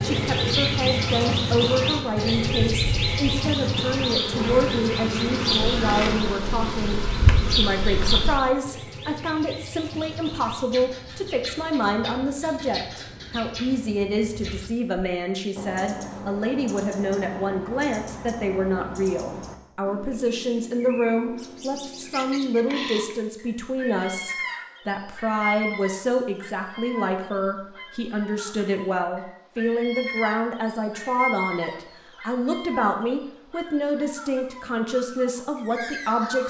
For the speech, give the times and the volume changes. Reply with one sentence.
You can hear the speech from 0.0 to 36.4 s, at a steady volume.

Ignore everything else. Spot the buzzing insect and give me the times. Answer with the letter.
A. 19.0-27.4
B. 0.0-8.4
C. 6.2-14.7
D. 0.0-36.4
B.